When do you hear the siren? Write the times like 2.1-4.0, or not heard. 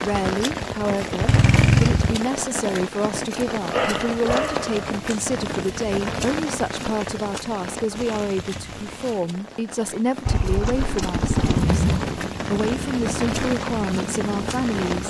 not heard.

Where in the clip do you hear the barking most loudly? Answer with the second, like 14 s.
4 s.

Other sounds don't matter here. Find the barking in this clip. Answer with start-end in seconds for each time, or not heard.
3.7-5.2.